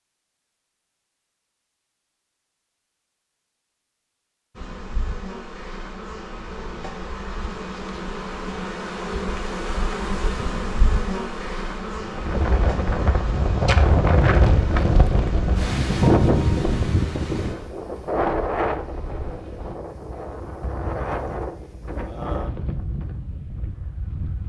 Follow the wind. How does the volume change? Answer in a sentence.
The loudness of the wind goes down.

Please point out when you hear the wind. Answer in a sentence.
You can hear the wind from 12.0 to 24.4 s.